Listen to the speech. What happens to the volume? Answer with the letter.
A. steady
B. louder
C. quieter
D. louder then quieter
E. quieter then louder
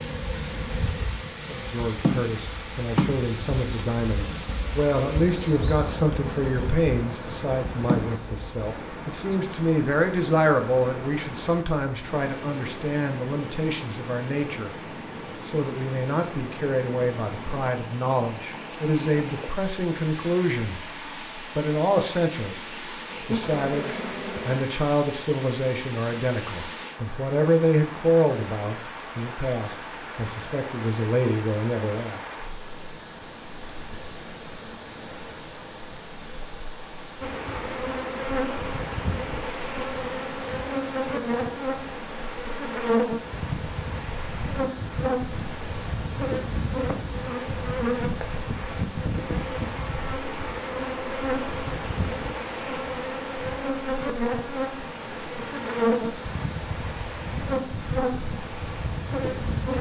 A.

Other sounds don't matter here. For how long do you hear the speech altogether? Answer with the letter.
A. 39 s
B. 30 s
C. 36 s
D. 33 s
B.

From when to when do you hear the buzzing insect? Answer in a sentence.
You can hear the buzzing insect from 0.0 to 8.5 s, from 23.1 to 24.6 s and from 37.2 to 59.7 s.